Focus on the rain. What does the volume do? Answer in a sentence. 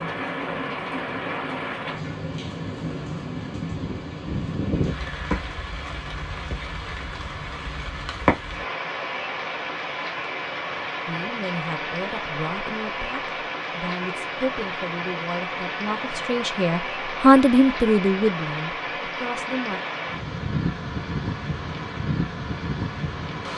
The loudness of the rain stays about the same.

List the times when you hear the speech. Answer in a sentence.
You can hear the speech from 11.1 to 19.8 s.